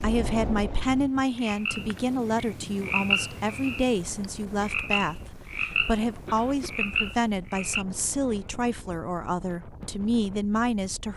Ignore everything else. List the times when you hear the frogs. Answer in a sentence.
You can hear the frogs from 0.0 to 7.8 s.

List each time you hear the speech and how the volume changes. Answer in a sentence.
The speech can be heard from 0.0 to 11.1 s, at a steady volume.